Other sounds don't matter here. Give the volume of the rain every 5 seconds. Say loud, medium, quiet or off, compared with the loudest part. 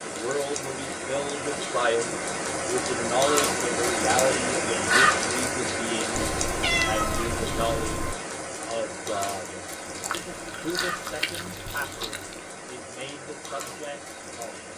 loud, loud, medium.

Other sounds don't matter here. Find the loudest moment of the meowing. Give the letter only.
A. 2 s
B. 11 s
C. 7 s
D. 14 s
C.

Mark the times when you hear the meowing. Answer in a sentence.
The meowing can be heard from 6.2 to 8.2 s.